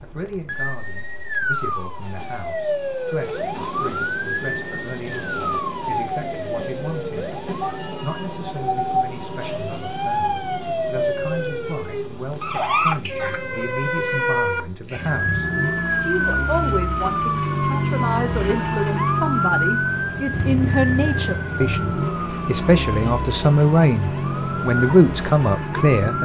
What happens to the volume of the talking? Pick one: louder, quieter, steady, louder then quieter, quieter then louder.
louder.